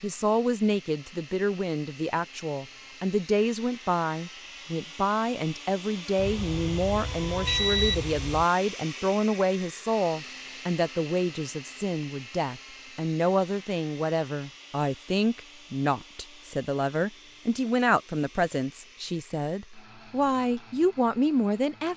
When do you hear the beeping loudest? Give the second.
8 s.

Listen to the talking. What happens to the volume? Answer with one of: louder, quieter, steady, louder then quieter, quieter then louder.
steady.